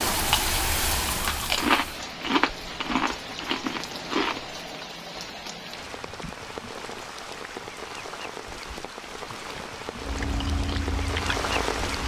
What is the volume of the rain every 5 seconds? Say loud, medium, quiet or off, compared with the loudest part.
loud, medium, loud.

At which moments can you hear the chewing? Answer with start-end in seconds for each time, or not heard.
0.1-4.6, 10.0-12.0.